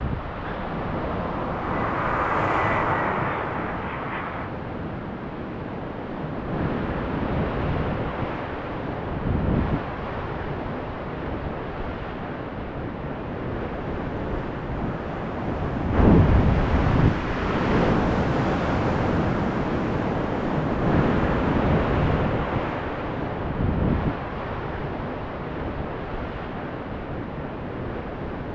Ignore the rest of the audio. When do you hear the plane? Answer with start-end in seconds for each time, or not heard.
0.1-4.5.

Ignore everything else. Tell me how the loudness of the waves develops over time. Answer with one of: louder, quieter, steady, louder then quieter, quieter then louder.
louder then quieter.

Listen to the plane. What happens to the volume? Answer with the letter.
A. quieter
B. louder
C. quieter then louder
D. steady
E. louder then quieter
E.